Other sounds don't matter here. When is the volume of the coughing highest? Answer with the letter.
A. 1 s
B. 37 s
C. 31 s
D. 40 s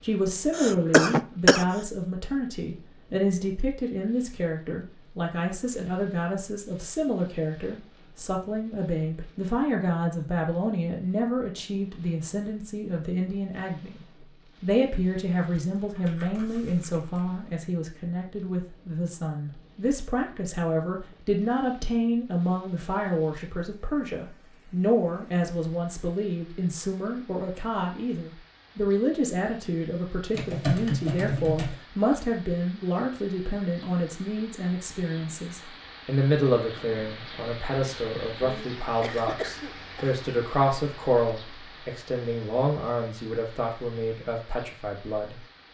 A.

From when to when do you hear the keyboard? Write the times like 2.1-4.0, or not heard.
15.8-17.4, 30.3-31.8.